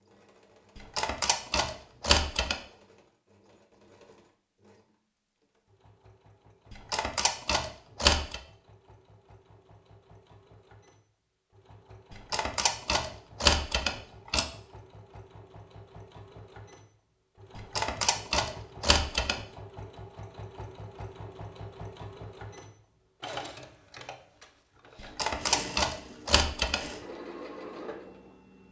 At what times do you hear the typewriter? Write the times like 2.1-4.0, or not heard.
0.8-2.5, 6.7-8.4, 12.1-14.4, 17.6-19.4, 25.0-26.9.